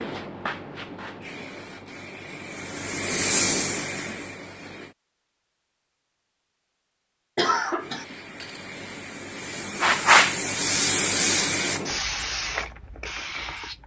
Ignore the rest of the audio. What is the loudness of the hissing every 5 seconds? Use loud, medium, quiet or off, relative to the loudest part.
medium, medium, loud.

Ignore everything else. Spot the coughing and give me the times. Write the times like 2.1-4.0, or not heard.
7.3-8.1.